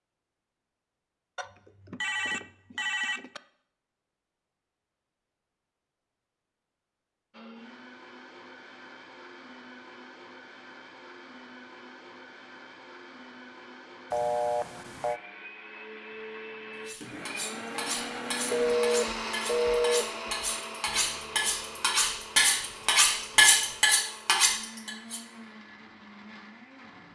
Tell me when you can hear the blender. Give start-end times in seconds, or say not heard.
7.3-27.1.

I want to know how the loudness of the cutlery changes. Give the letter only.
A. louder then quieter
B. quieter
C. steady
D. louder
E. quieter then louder
D.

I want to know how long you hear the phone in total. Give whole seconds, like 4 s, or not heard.
5 s.